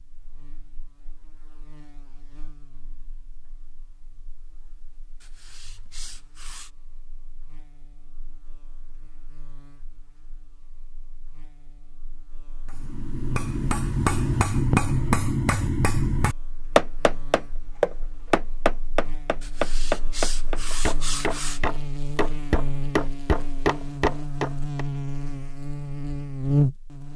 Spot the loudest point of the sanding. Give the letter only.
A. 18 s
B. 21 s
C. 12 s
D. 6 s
B.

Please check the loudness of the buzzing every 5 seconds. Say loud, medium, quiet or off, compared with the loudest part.
quiet, quiet, quiet, quiet, medium, loud.